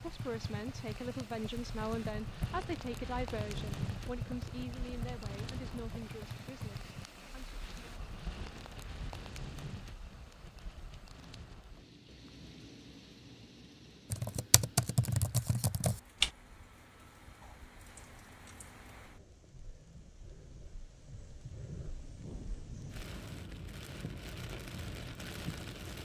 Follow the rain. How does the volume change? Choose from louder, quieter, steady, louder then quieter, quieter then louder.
quieter then louder.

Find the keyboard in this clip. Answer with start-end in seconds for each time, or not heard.
0.0-7.0, 14.1-16.3.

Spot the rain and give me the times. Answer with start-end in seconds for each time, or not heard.
0.0-25.9.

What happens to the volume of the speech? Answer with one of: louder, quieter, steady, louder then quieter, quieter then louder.
quieter.